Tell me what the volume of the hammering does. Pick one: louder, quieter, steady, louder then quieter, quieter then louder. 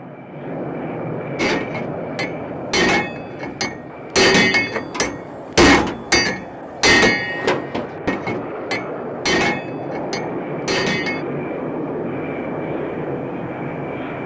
louder then quieter.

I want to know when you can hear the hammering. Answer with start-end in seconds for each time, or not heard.
1.4-11.2.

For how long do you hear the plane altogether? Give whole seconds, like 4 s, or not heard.
14 s.